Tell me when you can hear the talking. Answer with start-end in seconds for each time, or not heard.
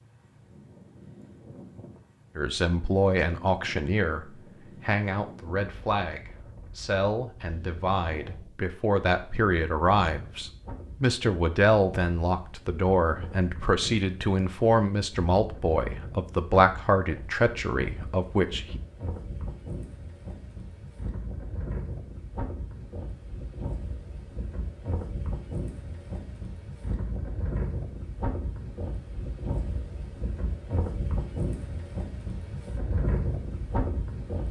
2.4-18.8.